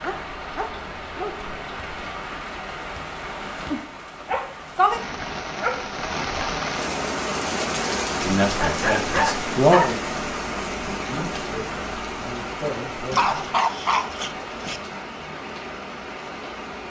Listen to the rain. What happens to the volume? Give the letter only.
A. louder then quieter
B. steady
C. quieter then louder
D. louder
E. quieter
A.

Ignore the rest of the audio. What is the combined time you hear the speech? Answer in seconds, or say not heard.
5 s.